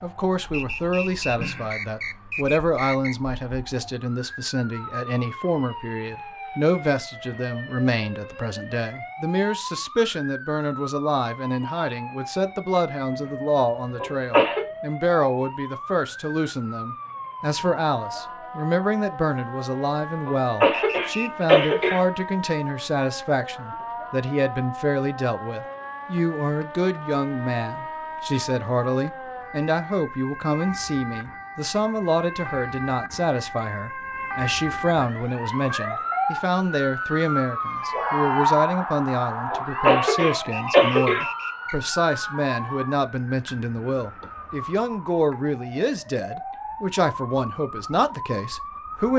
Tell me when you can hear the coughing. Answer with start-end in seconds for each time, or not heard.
14.0-14.7, 20.2-22.0, 39.5-41.2.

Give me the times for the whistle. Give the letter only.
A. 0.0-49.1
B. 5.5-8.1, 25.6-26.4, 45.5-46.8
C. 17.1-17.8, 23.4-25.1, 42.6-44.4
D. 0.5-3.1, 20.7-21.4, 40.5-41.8
D.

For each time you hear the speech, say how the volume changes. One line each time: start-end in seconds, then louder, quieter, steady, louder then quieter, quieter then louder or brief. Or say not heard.
0.0-49.1 steady.